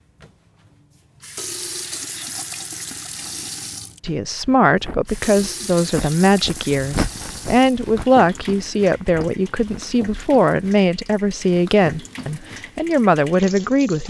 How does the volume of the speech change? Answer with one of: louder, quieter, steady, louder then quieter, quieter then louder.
steady.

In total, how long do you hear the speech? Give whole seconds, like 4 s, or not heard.
10 s.